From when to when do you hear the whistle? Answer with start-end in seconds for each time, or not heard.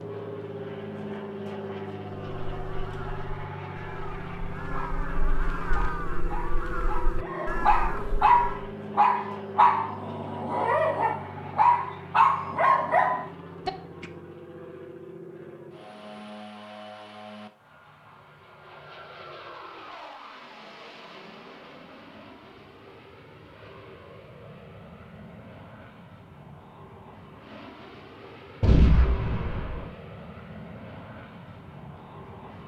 not heard.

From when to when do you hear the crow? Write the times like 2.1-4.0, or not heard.
2.1-8.7.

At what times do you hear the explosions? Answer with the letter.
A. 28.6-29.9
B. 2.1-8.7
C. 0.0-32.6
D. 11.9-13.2
A.